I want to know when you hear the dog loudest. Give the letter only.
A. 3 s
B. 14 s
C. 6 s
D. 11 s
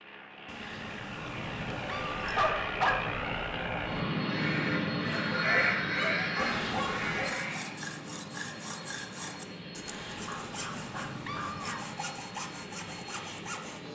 A.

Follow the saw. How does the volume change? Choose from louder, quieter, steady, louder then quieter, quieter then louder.
steady.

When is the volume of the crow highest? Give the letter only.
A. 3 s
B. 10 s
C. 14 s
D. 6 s
D.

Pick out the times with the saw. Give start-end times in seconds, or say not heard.
7.2-13.8.